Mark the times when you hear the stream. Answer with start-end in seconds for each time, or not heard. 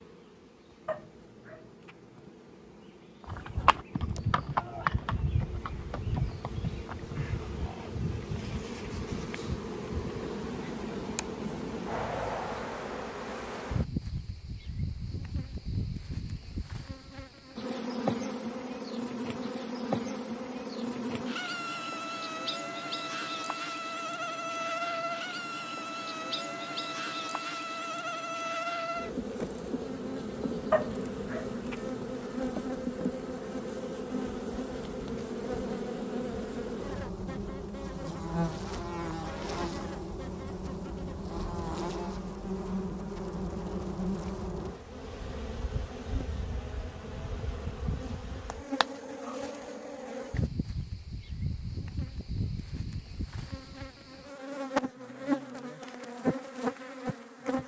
not heard.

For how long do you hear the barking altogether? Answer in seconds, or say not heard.
3 s.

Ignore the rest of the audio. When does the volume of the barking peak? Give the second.
31 s.